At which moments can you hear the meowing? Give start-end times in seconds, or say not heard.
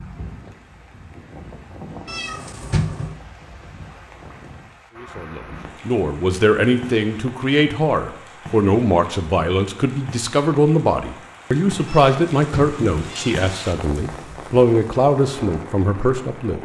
2.0-3.2, 11.8-13.3.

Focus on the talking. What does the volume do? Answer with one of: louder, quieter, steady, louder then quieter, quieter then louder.
steady.